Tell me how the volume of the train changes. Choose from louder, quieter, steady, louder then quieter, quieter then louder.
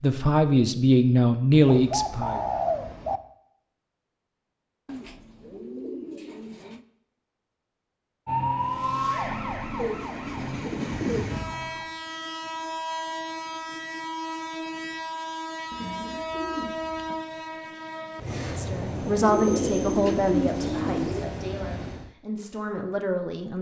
steady.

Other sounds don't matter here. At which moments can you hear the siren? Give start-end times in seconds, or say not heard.
8.2-11.8.